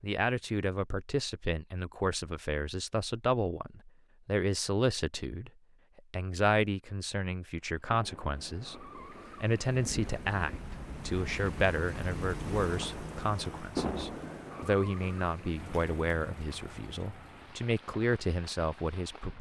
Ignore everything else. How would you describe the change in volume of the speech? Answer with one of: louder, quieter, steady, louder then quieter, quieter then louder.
steady.